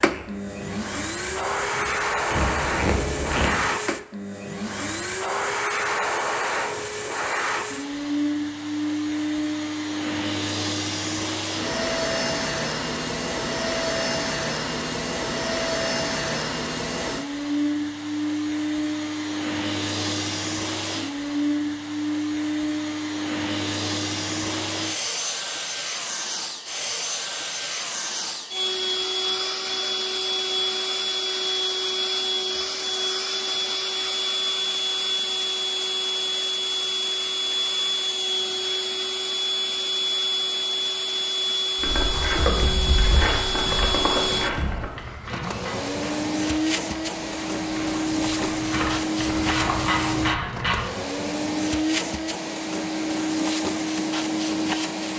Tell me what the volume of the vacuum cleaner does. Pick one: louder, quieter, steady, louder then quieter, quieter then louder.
steady.